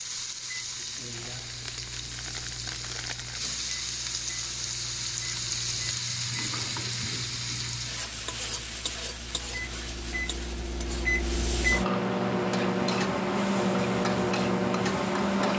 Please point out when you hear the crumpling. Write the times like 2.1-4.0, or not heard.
1.1-3.4.